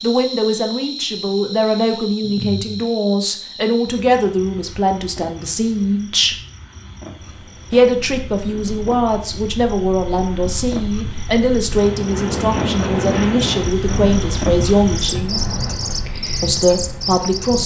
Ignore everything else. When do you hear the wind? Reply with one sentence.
You can hear the wind from 7.2 to 17.6 s.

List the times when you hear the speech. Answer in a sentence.
The speech can be heard from 0.0 to 6.3 s, from 7.7 to 15.4 s and from 16.4 to 17.6 s.